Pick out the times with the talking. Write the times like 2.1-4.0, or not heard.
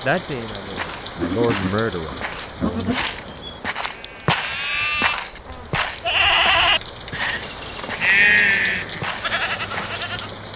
0.0-3.0.